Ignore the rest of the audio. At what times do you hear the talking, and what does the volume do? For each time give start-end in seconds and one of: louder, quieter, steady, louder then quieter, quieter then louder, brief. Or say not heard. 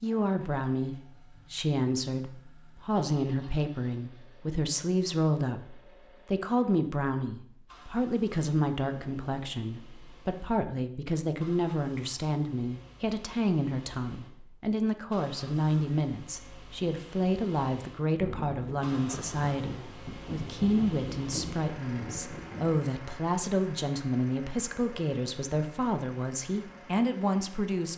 0.0-27.9 steady.